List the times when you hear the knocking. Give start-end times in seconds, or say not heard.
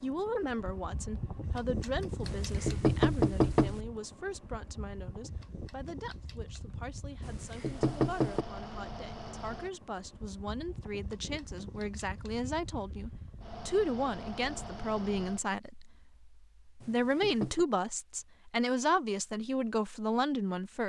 2.2-3.8, 7.2-8.4, 16.8-17.6.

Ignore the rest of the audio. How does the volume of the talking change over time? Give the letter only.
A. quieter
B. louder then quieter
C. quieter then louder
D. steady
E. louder
C.